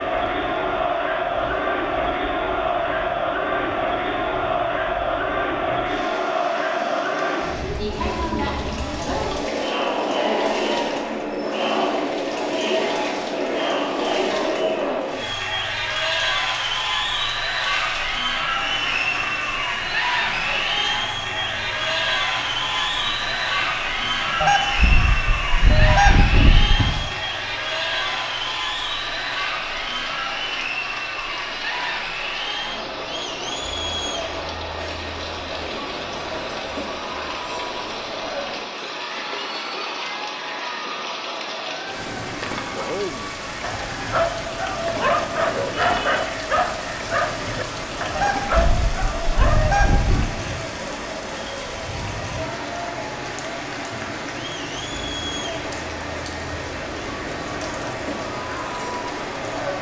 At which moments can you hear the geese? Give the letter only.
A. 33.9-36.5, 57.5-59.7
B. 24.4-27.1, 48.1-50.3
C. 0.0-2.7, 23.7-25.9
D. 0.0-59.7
B.